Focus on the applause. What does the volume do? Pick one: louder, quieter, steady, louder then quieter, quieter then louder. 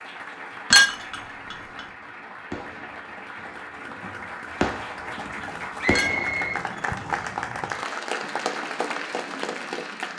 louder.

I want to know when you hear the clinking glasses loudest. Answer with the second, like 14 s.
1 s.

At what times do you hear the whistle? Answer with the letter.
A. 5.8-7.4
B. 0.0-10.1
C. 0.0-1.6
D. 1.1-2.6
A.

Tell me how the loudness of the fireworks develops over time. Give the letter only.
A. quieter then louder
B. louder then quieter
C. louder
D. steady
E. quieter
A.